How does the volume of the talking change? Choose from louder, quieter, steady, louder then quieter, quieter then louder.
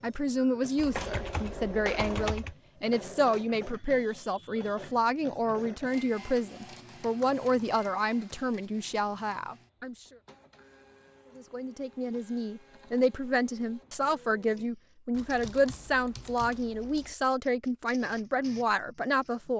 steady.